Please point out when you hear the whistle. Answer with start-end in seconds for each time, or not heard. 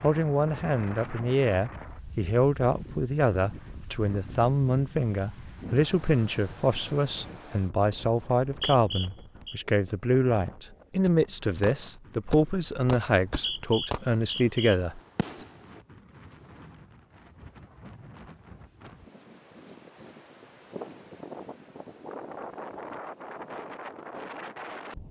8.4-9.6, 13.1-14.8.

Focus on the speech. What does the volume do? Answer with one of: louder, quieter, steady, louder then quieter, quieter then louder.
steady.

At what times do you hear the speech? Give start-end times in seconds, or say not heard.
0.0-15.0.